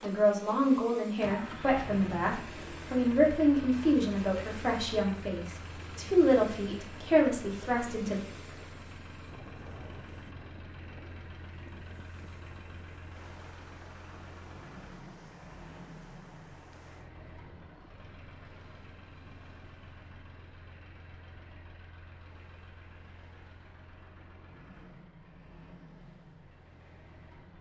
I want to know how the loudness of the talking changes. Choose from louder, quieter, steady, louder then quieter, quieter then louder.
steady.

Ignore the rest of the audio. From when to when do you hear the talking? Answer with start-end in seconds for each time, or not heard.
0.0-8.2.